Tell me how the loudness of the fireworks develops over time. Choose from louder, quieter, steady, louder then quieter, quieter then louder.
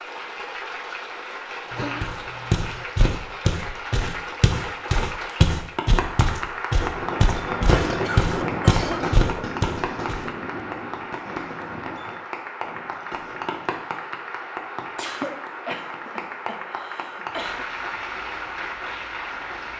quieter.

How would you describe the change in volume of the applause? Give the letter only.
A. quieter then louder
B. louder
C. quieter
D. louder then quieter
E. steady
E.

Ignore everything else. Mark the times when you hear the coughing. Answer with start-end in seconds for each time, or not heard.
1.7-2.9, 7.8-9.2, 14.9-17.6.